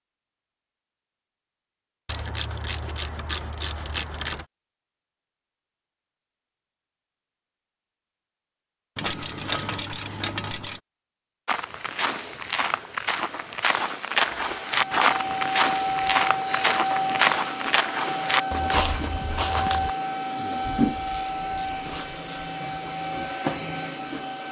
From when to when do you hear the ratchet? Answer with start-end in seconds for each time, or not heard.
2.0-4.5, 8.9-10.8, 20.9-22.6.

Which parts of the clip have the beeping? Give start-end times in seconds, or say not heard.
not heard.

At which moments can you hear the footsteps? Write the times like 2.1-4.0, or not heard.
11.4-19.9.